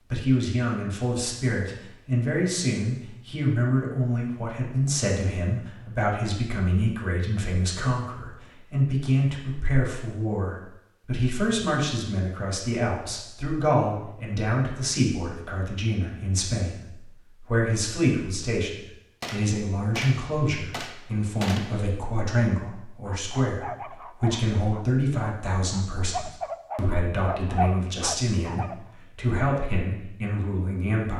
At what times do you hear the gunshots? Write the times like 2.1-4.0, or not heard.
19.2-21.8.